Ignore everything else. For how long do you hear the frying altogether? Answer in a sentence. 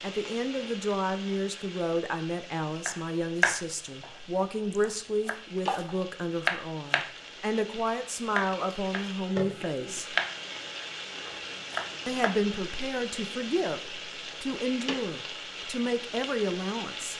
You can hear the frying for 17 seconds altogether.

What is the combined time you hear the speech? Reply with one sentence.
The speech can be heard for 15 seconds in total.